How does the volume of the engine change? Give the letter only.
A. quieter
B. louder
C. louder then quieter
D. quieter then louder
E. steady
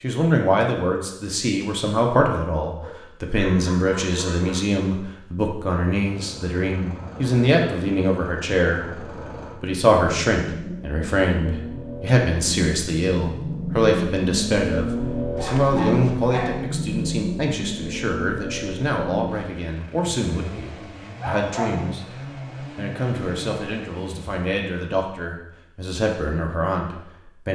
C.